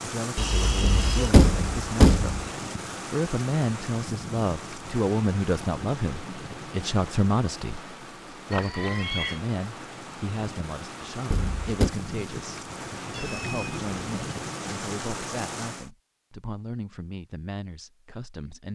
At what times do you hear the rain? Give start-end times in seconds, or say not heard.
0.0-15.9.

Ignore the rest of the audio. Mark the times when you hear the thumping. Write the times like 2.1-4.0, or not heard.
0.8-2.5, 11.3-11.9.